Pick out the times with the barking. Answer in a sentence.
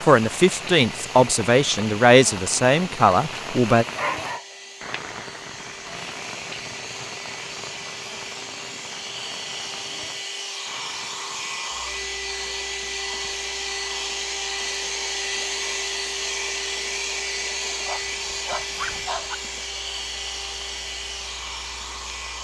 You can hear the barking from 4.0 to 5.0 s and from 17.9 to 19.4 s.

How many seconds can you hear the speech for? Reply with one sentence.
The speech can be heard for 4 seconds in total.